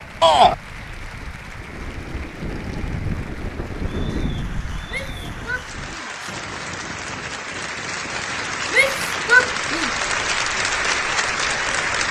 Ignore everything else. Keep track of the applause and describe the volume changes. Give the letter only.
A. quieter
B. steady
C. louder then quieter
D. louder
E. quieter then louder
D.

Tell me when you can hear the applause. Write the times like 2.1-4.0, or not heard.
0.0-12.0.